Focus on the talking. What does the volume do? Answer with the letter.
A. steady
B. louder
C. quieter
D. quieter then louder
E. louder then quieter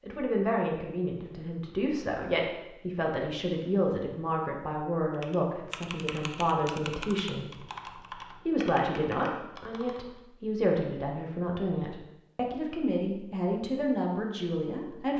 A.